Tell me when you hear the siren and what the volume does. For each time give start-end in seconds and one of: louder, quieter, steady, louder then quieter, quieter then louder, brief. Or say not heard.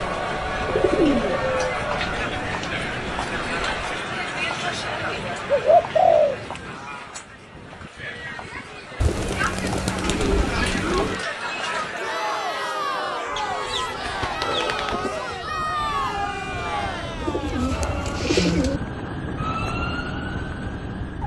15.8-21.2 louder.